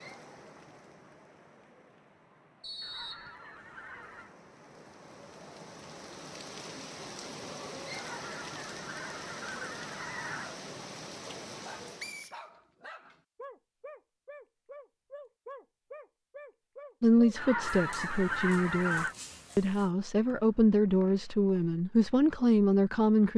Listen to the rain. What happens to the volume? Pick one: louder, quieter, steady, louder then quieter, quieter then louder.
louder.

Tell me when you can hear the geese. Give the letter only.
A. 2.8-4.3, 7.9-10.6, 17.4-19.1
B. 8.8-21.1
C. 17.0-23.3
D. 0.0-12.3
A.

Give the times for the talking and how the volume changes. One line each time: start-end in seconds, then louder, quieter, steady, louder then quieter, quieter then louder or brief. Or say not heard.
17.0-23.3 louder.